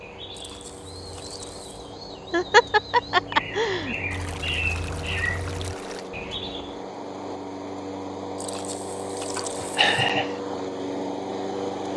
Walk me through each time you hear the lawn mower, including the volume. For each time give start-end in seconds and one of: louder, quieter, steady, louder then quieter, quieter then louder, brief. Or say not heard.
0.0-11.9 louder.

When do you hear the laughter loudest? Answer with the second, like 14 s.
3 s.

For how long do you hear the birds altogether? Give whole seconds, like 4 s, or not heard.
7 s.